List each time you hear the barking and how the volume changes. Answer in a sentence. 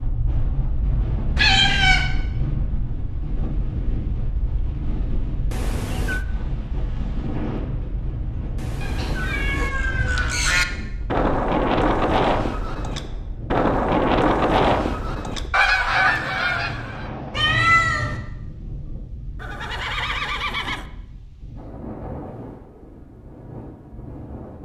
You can't hear the barking here.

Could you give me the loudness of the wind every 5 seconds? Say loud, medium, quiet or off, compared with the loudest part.
loud, loud, medium, medium, medium.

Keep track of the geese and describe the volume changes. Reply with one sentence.
The loudness of the geese stays about the same.